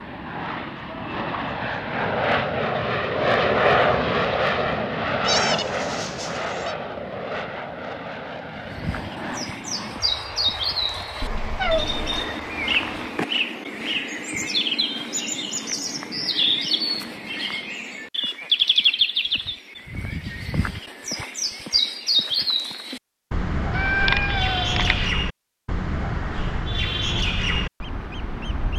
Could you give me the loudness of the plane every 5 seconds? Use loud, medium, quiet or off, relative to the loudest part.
loud, medium, quiet, off, off, off.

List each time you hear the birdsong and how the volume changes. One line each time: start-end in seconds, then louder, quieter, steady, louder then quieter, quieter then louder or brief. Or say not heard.
8.6-28.7 steady.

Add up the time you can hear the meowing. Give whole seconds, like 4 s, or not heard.
4 s.